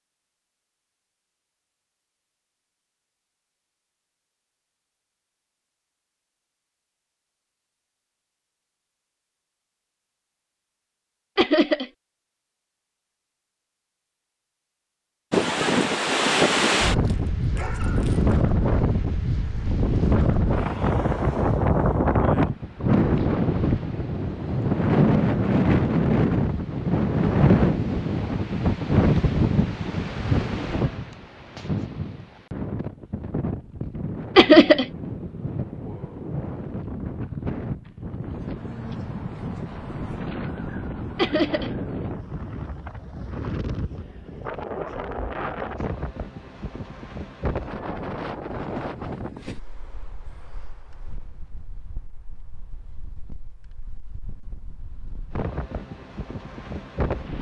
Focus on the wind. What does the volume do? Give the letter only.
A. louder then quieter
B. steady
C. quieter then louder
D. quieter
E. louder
D.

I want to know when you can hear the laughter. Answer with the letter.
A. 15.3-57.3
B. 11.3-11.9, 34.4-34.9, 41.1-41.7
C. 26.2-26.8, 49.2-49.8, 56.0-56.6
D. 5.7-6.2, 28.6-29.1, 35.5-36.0
B.